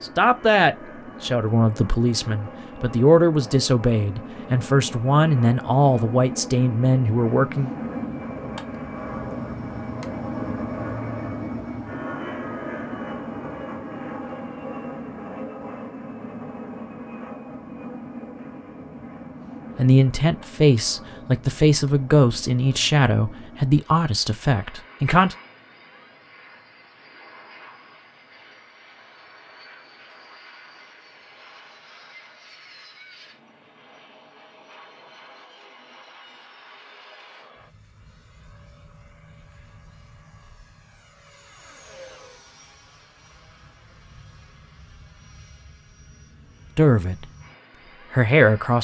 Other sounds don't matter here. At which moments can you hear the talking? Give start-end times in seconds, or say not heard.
0.0-7.7, 19.8-25.4, 46.8-47.2, 48.1-48.7.